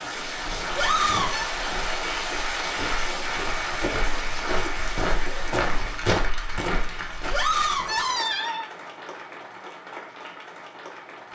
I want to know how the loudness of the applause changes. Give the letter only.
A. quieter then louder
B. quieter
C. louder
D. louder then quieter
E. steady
B.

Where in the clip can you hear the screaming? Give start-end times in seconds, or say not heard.
0.8-1.6, 7.3-8.7.